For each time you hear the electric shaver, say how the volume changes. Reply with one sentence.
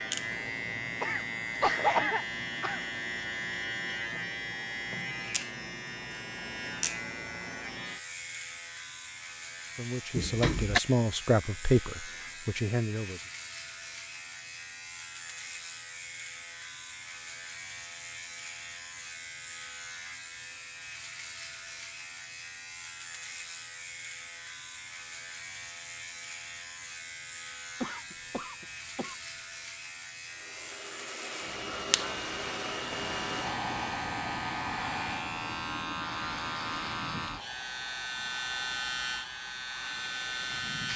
The electric shaver can be heard from 0.0 to 40.9 s, getting quieter then louder.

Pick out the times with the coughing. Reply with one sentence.
You can hear the coughing from 1.0 to 2.9 s and from 27.8 to 29.1 s.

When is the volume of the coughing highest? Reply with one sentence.
The volume of the coughing peaks at 2 seconds.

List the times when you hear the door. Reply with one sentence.
You can hear the door from 10.2 to 10.8 s.